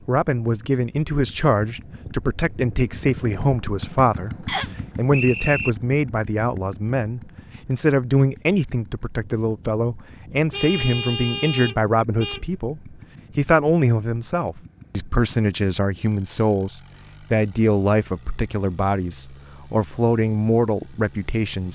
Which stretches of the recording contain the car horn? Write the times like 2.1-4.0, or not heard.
10.5-12.4.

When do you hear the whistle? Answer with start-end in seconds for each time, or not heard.
4.5-5.7.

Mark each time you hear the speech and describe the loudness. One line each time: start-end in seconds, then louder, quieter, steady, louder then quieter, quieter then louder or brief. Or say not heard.
0.1-21.7 steady.